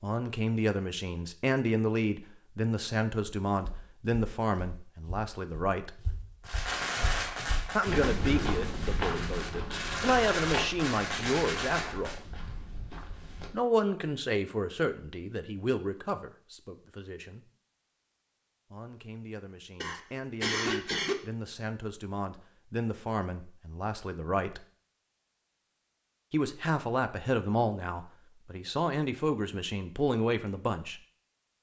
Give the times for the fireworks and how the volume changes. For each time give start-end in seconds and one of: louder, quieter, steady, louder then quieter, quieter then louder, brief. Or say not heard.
6.4-12.2 quieter then louder.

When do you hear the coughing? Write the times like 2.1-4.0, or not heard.
19.8-21.1.